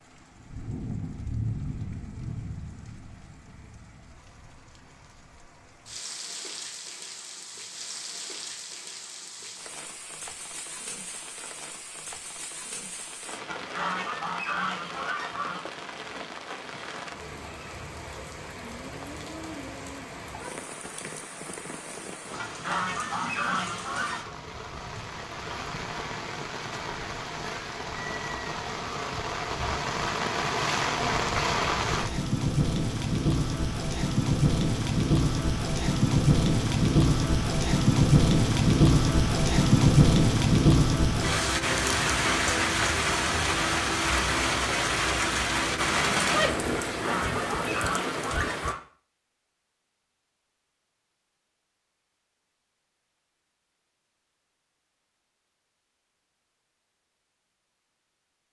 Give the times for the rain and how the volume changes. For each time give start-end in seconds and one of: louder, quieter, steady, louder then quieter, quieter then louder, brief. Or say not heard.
0.0-48.8 louder.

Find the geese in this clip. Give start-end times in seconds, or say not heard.
13.4-15.6, 22.4-24.3, 46.9-48.8.